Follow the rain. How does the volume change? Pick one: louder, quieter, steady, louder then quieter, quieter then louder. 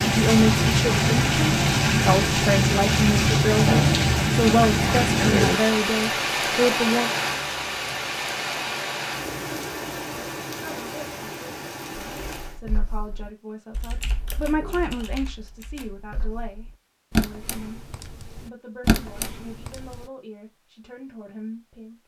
quieter.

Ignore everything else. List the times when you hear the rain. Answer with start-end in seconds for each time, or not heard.
0.0-12.6.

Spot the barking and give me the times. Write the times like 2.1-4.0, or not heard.
not heard.